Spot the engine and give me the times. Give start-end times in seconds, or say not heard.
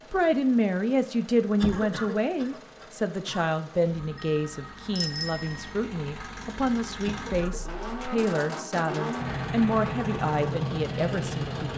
0.0-11.7.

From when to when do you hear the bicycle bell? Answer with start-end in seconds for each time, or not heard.
4.2-5.7.